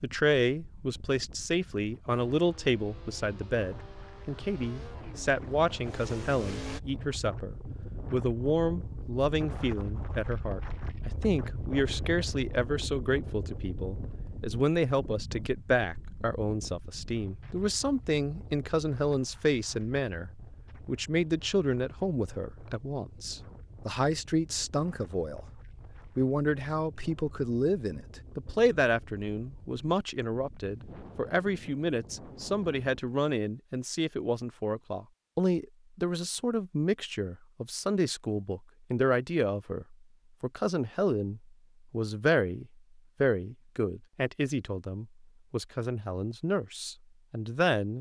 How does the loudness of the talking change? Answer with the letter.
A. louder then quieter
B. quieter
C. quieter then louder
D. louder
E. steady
E.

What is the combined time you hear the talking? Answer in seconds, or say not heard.
48 s.